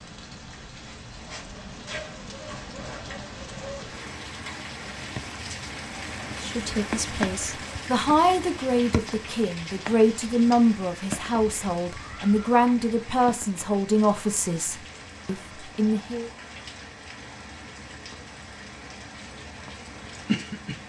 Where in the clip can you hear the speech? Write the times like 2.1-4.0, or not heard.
6.4-16.3.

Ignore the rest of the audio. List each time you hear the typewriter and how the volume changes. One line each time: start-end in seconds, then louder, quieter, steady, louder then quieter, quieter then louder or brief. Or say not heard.
not heard.